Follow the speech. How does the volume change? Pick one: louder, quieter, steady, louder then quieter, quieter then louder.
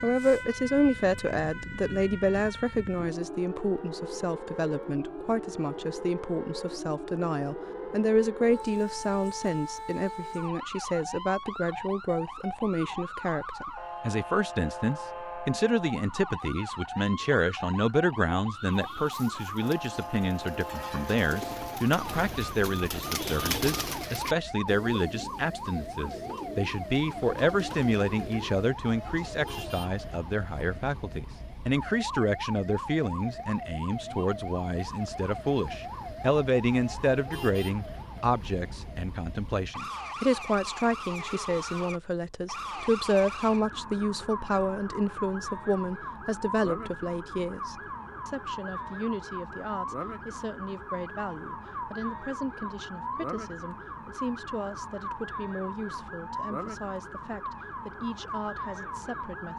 quieter.